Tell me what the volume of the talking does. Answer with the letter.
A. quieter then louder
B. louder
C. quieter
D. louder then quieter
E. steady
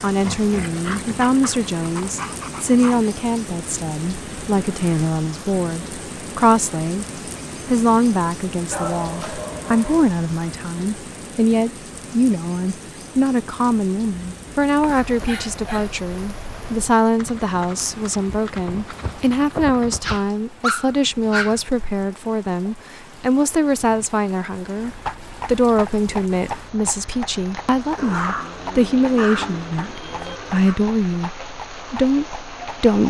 E.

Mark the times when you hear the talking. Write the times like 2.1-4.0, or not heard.
0.0-7.0, 7.7-33.0.